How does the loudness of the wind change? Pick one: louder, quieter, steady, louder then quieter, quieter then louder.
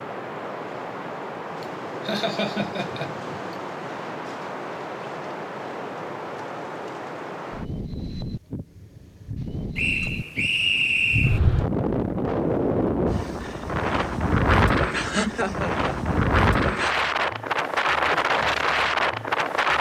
louder.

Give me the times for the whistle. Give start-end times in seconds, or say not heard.
9.8-11.4.